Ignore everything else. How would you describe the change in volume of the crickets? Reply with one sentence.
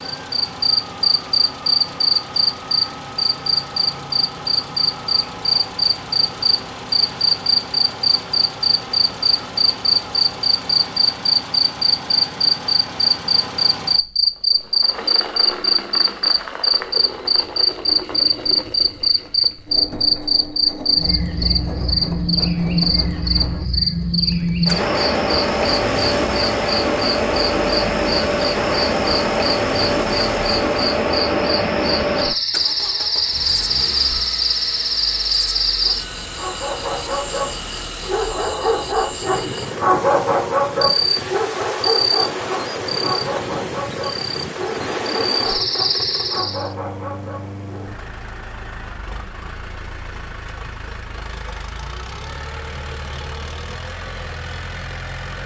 The loudness of the crickets goes down.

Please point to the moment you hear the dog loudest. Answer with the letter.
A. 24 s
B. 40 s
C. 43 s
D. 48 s
B.